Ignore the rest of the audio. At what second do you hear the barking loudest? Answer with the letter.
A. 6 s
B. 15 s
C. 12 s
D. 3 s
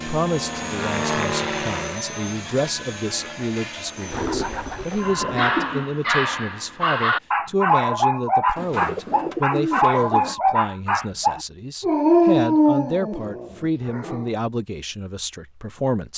C.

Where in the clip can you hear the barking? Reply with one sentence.
You can hear the barking from 5.0 to 14.3 s.